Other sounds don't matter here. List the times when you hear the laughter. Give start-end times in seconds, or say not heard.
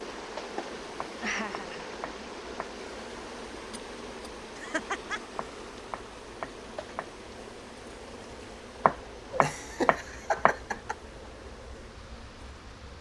1.2-1.9, 4.5-5.4, 9.3-10.9.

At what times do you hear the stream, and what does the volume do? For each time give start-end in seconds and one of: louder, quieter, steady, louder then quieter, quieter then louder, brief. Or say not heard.
0.0-12.9 quieter.